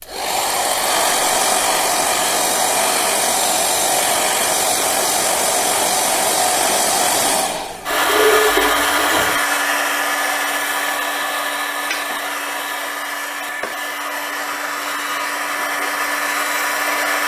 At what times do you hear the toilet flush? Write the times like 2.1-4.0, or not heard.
7.9-9.4.